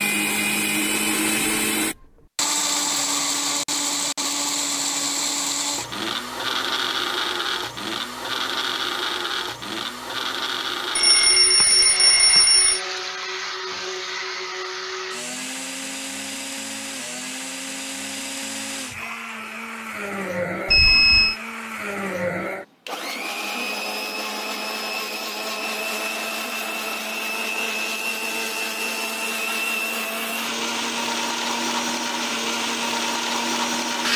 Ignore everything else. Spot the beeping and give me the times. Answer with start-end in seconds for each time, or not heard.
10.9-12.8, 20.6-21.4.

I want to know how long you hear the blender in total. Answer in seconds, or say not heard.
34 s.